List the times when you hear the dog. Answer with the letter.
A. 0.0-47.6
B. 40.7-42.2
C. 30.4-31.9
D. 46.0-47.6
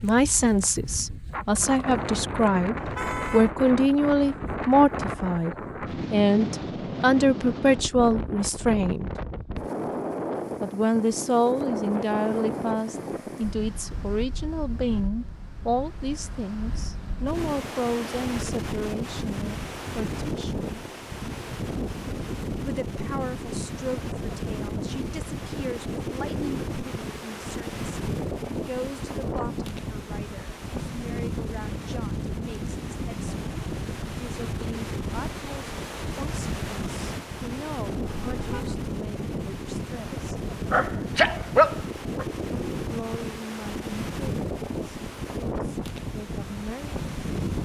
B.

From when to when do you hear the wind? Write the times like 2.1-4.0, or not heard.
0.0-47.6.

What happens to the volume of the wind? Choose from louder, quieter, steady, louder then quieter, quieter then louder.
steady.